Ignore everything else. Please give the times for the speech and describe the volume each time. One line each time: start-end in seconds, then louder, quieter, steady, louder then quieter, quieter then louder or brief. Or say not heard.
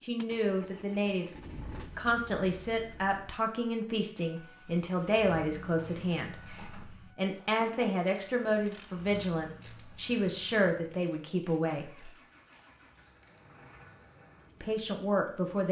0.0-1.4 brief
1.9-12.1 steady
14.6-15.6 brief.